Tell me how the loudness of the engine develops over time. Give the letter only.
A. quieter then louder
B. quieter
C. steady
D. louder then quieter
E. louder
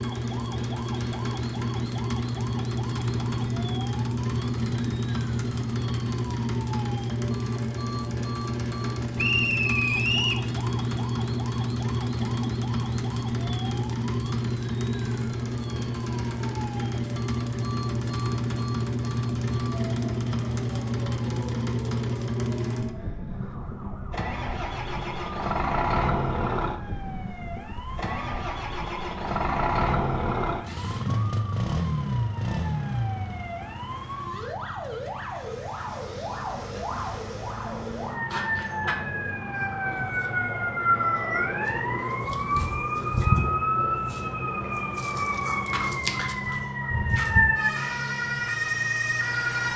B.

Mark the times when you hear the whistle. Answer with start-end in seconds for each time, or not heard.
9.2-10.4.